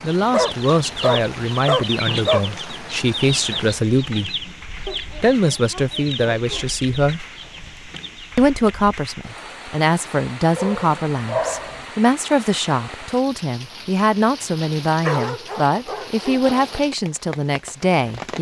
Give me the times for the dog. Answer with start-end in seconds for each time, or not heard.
0.2-2.5, 4.8-6.7, 10.6-11.8, 15.0-16.8.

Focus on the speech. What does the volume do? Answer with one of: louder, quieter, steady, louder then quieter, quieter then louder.
steady.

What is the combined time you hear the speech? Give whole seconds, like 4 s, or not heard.
17 s.